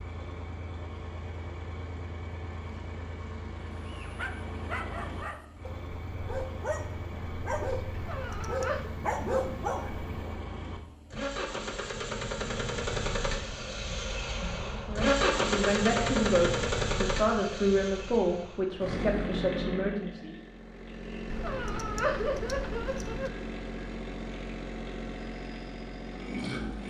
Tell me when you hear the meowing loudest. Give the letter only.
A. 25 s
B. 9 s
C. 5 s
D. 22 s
D.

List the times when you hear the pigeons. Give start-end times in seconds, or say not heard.
not heard.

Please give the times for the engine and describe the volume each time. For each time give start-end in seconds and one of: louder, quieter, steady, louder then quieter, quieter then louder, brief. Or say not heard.
0.0-26.8 louder then quieter.